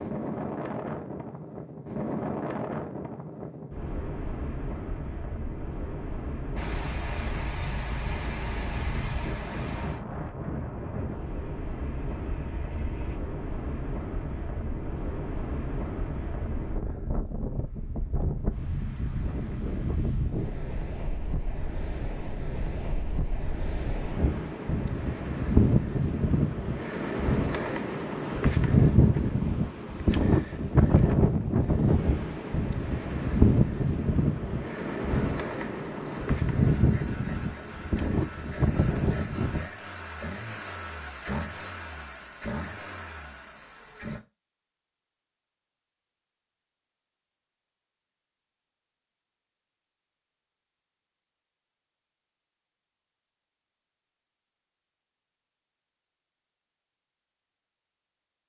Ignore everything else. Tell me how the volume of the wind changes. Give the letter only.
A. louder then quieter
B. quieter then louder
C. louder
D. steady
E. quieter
C.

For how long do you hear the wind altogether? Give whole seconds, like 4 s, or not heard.
40 s.